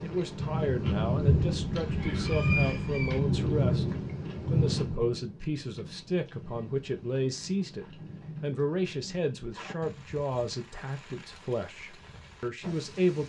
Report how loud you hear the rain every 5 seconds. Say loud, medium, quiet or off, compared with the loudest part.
loud, quiet, quiet.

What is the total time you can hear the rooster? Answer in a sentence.
You can hear the rooster for 2 seconds altogether.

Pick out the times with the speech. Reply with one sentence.
The speech can be heard from 0.0 to 13.2 s.